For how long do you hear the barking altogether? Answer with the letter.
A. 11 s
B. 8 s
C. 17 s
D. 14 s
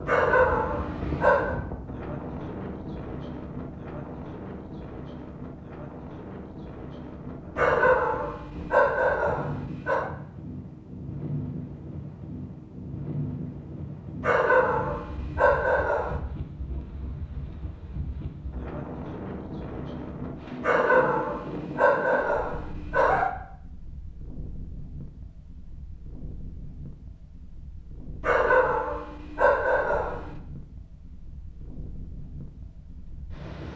A.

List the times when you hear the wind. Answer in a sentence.
You can hear the wind from 0.0 to 33.7 s.